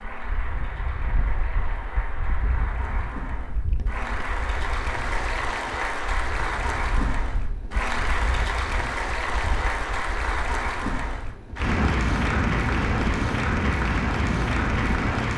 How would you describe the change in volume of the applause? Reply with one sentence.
The volume of the applause goes up.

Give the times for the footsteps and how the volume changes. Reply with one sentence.
You can't hear the footsteps here.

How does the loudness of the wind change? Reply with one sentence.
The loudness of the wind goes up.